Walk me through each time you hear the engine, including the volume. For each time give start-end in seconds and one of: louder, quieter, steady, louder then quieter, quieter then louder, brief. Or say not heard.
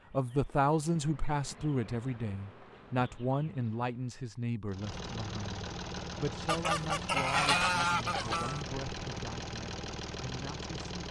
4.7-11.0 steady.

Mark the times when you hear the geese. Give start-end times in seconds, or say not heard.
6.5-8.6.